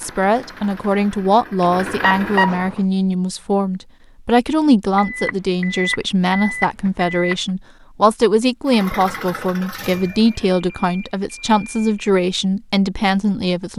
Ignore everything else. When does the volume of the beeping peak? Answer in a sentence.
The loudest moment of the beeping is at 2 seconds.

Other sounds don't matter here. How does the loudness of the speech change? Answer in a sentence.
The volume of the speech stays about the same.